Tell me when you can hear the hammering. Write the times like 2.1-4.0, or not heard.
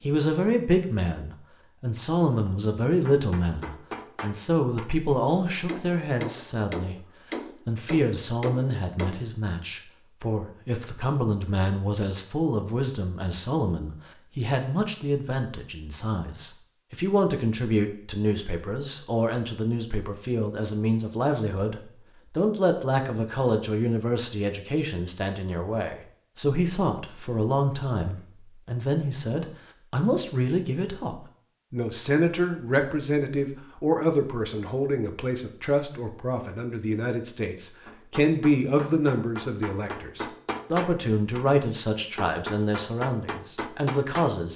3.0-9.2, 37.9-41.5, 42.1-44.4.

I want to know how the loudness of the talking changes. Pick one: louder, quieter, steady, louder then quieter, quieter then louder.
steady.